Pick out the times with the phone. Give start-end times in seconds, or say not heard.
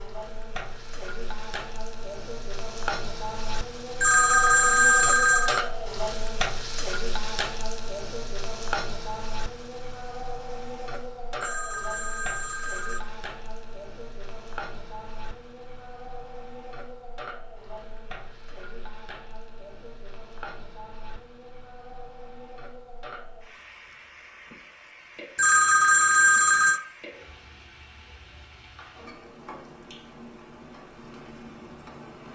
4.0-5.6, 11.4-13.0, 25.4-26.8.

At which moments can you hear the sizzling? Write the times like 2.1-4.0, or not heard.
0.0-32.3.